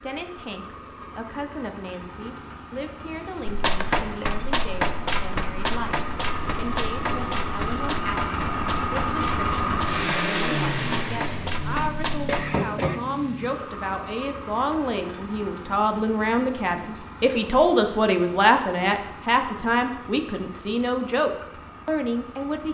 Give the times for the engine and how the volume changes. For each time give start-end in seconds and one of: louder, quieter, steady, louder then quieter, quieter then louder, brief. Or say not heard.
0.0-22.6 louder then quieter.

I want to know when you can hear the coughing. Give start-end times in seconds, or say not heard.
3.8-4.3, 12.2-13.0.